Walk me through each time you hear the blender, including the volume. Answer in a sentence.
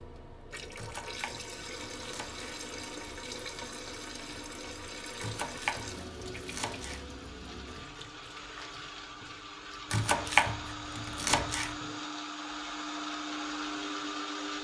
The blender can be heard from 1.7 to 14.5 s, getting louder.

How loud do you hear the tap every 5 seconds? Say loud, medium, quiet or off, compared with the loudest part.
loud, loud, medium.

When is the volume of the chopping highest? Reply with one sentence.
The loudest moment of the chopping is at 10 seconds.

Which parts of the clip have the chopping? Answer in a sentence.
You can hear the chopping from 0.8 to 2.5 s, from 5.2 to 7.0 s and from 9.9 to 11.8 s.